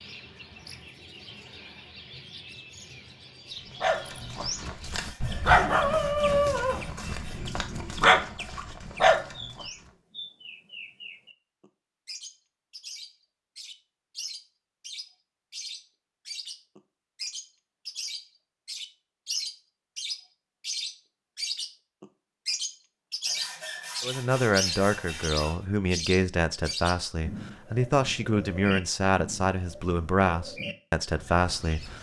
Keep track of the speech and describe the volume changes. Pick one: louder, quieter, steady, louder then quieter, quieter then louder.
steady.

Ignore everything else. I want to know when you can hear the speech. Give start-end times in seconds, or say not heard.
24.0-31.9.